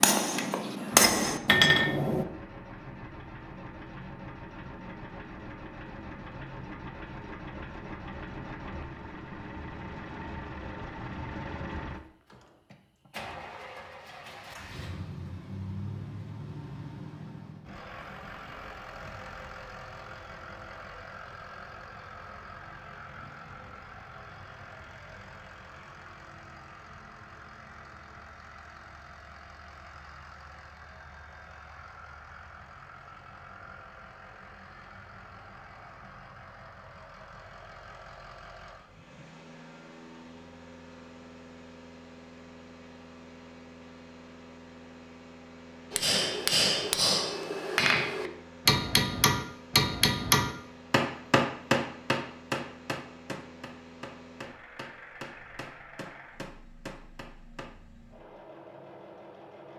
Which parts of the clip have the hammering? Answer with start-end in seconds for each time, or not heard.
0.0-2.2, 45.9-57.8.